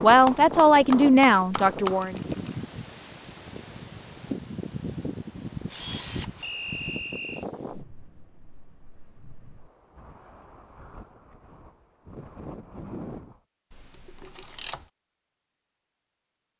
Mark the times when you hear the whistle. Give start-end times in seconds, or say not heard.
6.4-7.5.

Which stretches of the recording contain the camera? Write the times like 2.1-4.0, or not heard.
2.0-2.5, 5.7-6.5, 13.7-14.8.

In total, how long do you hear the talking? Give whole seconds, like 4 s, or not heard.
2 s.